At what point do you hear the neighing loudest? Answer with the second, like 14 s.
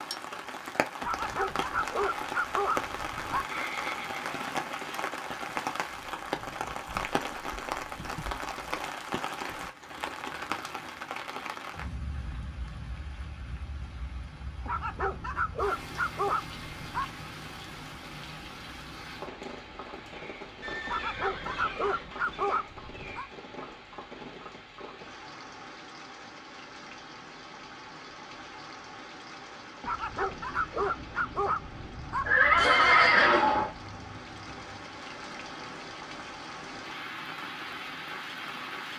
33 s.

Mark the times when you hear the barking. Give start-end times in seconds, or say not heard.
1.0-3.5, 14.7-17.1, 20.9-23.2, 29.8-32.7.